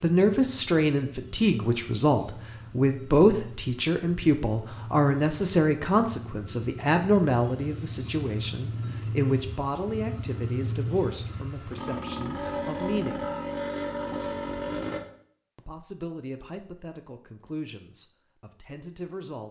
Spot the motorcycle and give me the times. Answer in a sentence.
The motorcycle can be heard from 0.2 to 15.0 s.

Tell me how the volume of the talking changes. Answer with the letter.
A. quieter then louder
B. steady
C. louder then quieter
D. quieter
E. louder
D.